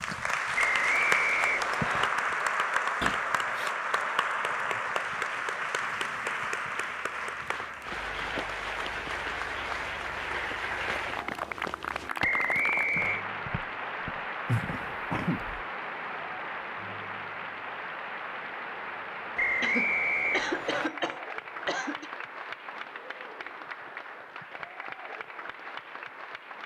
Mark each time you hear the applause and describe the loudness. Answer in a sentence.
The applause can be heard from 0.0 to 26.6 s, getting quieter.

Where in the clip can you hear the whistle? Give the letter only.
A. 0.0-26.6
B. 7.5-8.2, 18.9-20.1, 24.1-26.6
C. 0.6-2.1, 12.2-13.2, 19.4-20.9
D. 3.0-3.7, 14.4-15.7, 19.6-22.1
C.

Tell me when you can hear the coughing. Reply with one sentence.
You can hear the coughing from 3.0 to 3.7 s, from 14.4 to 15.7 s and from 19.6 to 22.1 s.